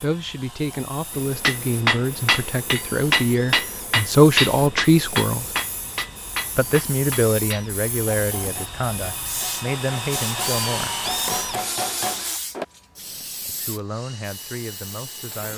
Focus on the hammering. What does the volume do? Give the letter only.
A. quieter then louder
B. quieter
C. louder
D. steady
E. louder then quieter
A.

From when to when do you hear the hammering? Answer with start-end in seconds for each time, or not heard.
1.1-12.7.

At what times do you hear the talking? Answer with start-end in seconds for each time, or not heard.
0.0-5.5, 6.5-10.9, 13.4-15.5.